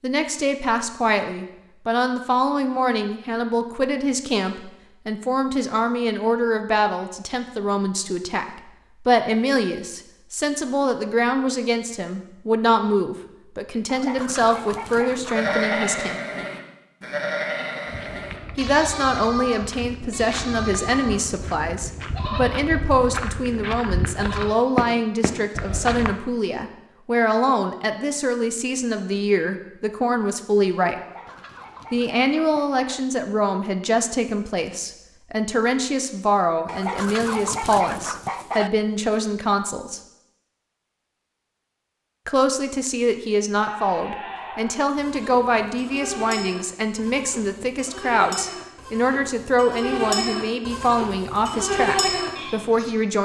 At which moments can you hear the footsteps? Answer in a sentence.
You can hear the footsteps from 17.9 to 26.1 s.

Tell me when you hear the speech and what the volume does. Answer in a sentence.
The speech can be heard from 0.0 to 16.2 s, at a steady volume; from 18.6 to 30.9 s, at a steady volume; from 31.9 to 40.0 s, at a steady volume; and from 42.2 to 53.1 s, at a steady volume.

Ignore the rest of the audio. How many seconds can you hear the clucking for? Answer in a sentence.
The clucking can be heard for 6 seconds in total.